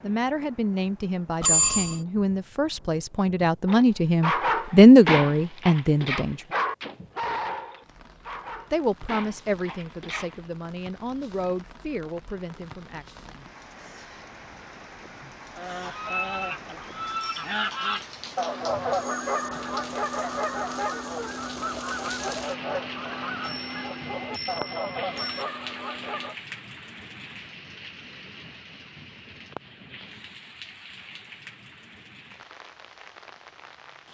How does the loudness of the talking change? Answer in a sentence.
The volume of the talking goes up, then down.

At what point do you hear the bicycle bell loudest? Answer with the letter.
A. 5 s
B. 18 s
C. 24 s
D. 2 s
D.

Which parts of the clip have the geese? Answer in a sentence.
You can hear the geese from 15.6 to 26.4 s.